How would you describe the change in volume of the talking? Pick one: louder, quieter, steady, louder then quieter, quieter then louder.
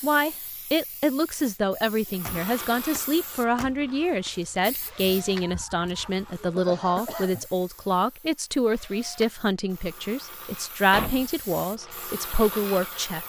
steady.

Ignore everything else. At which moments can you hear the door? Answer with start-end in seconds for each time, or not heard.
2.1-4.3, 10.9-11.3.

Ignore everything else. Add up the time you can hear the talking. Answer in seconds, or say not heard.
13 s.